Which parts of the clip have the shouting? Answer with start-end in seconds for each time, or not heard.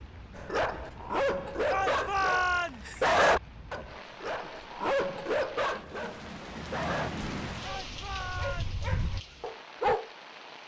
1.6-3.0, 7.6-8.8.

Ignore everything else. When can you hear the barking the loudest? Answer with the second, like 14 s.
3 s.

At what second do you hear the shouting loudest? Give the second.
2 s.